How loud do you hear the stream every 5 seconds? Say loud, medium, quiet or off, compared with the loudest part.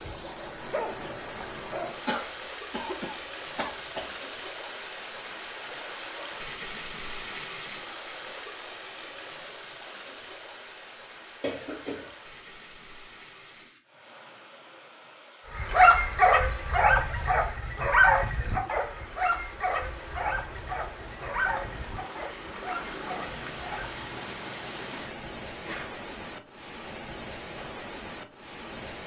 loud, loud, medium, medium, loud, loud.